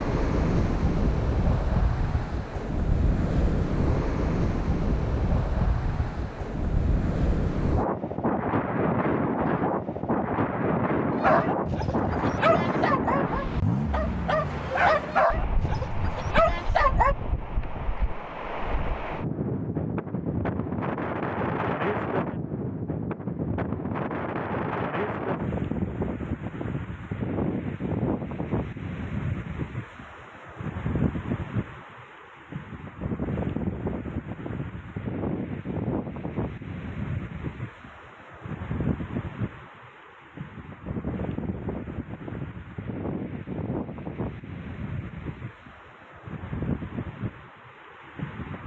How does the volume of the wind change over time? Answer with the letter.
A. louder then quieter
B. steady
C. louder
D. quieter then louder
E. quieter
E.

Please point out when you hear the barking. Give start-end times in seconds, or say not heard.
11.1-17.1.